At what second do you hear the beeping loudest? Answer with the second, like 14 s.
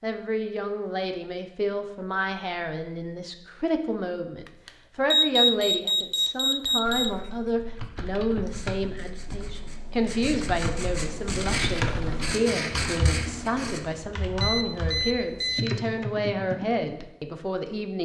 5 s.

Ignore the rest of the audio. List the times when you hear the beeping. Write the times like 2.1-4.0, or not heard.
4.5-7.2, 14.4-15.7.